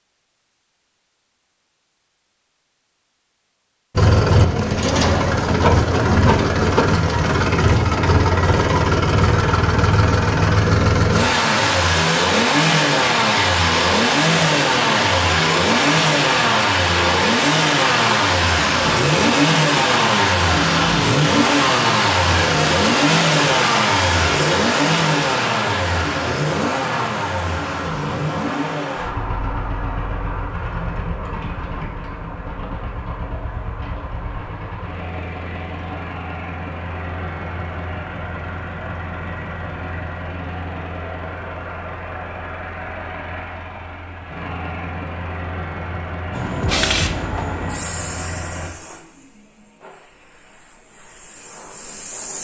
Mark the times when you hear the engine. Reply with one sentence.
The engine can be heard from 4.0 to 48.7 s.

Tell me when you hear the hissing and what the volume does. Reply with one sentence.
The hissing can be heard from 46.3 to 52.3 s, getting quieter then louder.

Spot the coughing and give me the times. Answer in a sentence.
You can't hear the coughing here.